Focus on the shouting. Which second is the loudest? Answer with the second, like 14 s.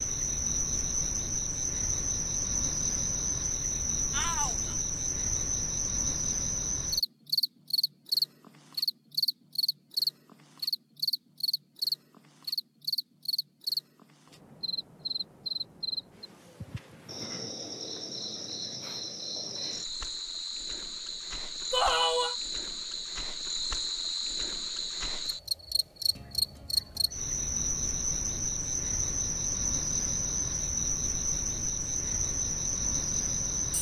22 s.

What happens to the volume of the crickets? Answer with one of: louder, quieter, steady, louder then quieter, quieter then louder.
quieter then louder.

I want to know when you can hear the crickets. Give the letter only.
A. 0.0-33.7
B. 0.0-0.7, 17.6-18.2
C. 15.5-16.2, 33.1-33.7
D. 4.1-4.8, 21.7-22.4
A.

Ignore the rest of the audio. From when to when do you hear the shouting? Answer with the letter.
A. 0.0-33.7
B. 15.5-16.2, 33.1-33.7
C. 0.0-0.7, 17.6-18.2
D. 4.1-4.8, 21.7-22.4
D.